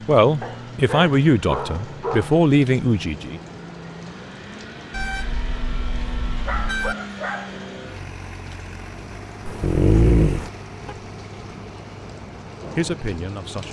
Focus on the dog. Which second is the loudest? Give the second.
10 s.